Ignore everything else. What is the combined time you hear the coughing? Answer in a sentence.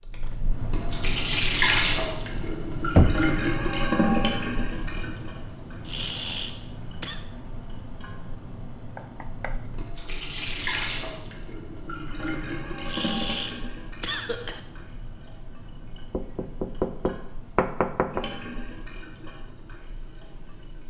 The coughing can be heard for 3 seconds in total.